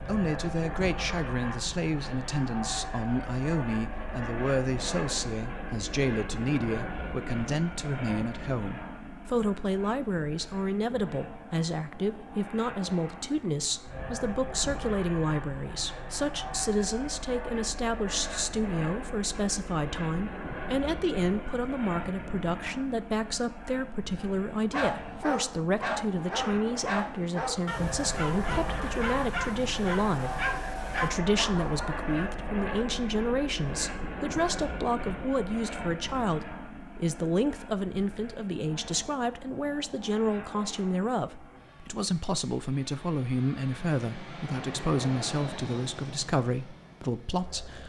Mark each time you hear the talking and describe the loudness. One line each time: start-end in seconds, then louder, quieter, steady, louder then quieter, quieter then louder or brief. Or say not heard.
0.0-47.8 steady.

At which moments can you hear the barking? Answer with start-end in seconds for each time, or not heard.
24.2-32.3.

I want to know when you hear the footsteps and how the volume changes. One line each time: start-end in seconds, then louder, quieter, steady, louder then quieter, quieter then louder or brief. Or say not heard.
not heard.